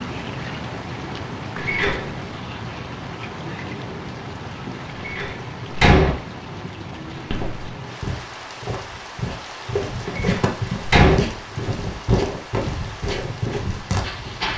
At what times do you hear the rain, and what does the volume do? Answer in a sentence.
The rain can be heard from 0.0 to 14.5 s, getting quieter.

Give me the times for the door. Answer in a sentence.
The door can be heard from 1.6 to 2.1 s, from 5.0 to 6.2 s and from 10.2 to 11.2 s.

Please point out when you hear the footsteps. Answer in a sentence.
You can hear the footsteps from 7.1 to 14.5 s.